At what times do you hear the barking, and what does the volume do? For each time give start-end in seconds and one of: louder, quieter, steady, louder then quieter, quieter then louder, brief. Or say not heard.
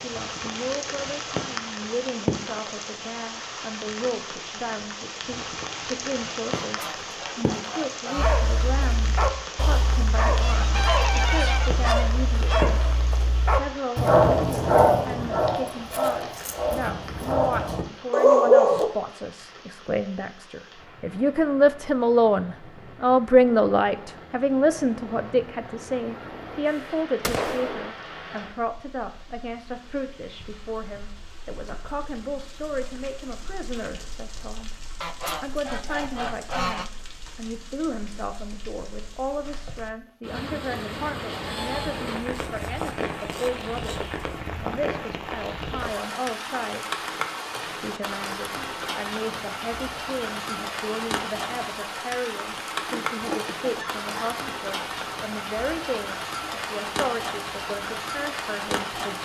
8.2-18.9 louder.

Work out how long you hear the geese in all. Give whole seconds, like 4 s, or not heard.
12 s.